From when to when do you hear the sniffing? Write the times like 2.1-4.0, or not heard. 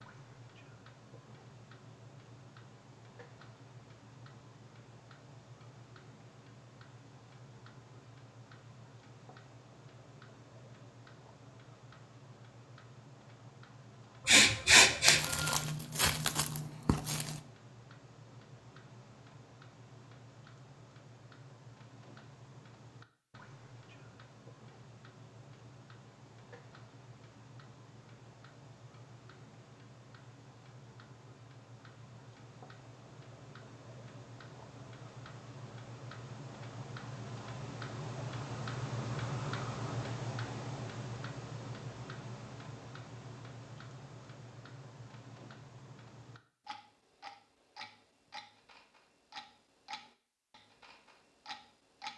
14.2-15.6.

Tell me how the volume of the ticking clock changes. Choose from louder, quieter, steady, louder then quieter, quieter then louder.
louder then quieter.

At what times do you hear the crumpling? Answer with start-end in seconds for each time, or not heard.
15.1-17.4.